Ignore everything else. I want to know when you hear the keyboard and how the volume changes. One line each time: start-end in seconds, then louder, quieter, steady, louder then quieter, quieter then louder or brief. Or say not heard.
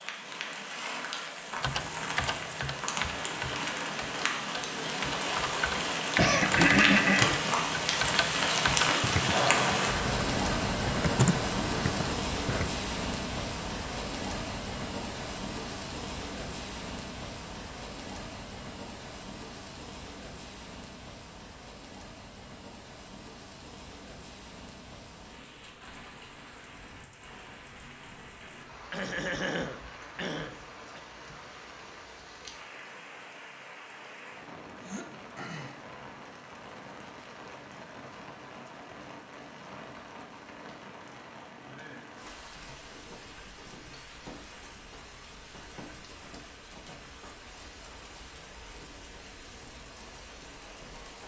1.6-12.7 louder.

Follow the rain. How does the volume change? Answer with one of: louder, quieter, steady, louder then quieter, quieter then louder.
quieter.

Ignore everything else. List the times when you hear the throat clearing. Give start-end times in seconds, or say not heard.
6.2-7.2, 28.9-31.0, 34.7-36.0.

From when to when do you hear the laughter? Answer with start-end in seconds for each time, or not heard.
not heard.